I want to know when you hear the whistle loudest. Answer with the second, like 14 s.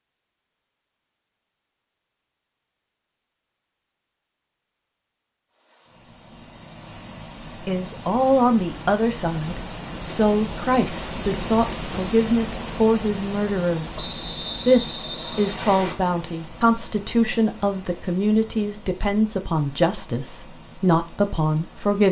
14 s.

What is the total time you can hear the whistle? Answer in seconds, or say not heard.
2 s.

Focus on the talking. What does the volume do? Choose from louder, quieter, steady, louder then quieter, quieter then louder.
steady.